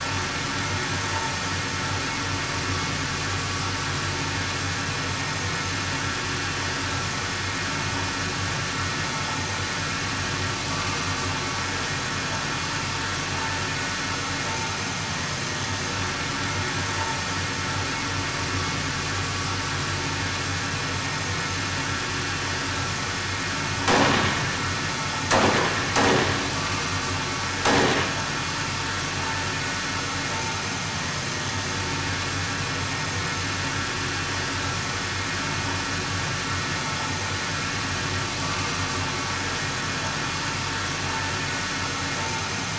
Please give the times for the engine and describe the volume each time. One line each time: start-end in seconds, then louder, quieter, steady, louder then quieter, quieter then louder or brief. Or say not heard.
0.0-42.7 steady.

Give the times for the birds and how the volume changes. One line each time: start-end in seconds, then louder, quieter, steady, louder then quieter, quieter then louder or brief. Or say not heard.
not heard.